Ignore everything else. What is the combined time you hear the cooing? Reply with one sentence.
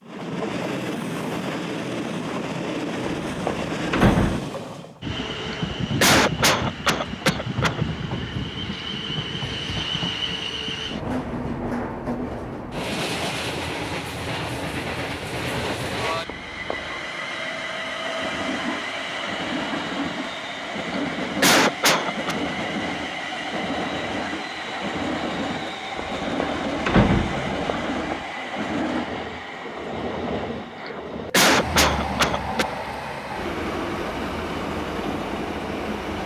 The cooing can't be heard in this clip.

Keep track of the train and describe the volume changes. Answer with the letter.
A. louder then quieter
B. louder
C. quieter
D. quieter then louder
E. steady
E.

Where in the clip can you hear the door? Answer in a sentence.
The door can be heard from 3.2 to 4.5 s, from 16.2 to 17.1 s and from 25.9 to 28.2 s.